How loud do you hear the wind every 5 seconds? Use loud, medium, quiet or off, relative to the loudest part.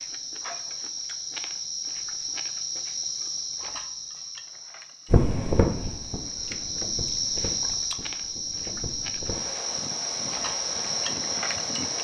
off, loud, medium.